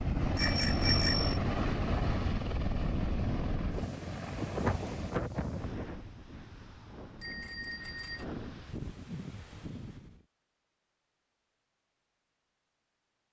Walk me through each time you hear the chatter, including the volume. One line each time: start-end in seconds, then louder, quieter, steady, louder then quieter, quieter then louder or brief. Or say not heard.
not heard.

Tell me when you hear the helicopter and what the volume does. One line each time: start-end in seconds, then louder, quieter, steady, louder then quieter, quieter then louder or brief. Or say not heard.
0.0-5.2 quieter.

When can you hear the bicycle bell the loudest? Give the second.
1 s.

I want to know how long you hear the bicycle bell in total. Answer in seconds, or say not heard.
2 s.